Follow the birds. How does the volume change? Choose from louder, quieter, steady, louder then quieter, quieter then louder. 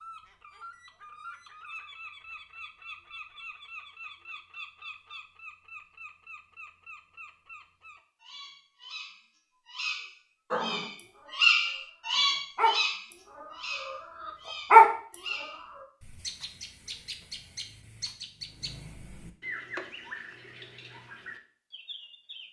louder then quieter.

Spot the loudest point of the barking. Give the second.
15 s.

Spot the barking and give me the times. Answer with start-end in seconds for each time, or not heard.
10.5-15.4.